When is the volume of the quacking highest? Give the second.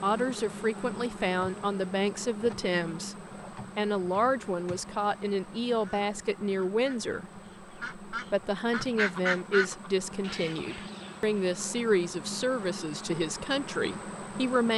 9 s.